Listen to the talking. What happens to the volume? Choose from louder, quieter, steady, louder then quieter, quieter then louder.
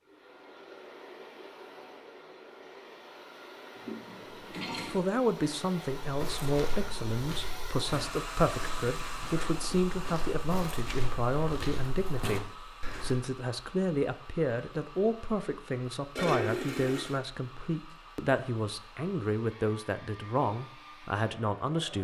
steady.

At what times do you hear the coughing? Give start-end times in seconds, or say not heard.
not heard.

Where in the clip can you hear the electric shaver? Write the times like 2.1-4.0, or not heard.
not heard.